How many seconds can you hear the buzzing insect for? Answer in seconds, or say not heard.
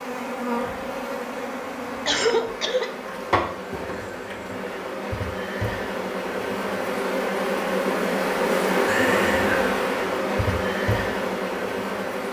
12 s.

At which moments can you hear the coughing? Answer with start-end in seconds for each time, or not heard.
2.0-2.9.